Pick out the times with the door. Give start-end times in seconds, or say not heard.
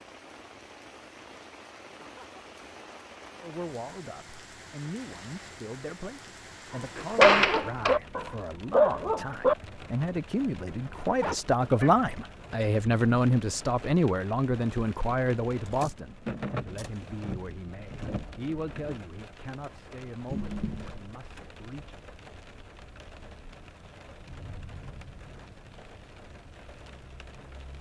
7.0-8.0.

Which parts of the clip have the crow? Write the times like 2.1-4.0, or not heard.
not heard.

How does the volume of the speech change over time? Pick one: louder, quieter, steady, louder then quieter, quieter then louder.
louder then quieter.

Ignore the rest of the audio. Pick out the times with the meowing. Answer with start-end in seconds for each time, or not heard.
20.2-20.9.